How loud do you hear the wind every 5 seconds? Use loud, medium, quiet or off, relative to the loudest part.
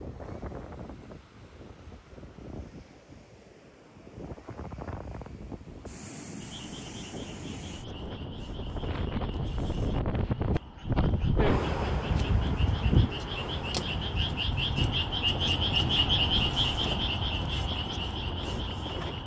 quiet, medium, loud, medium.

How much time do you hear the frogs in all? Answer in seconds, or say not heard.
13 s.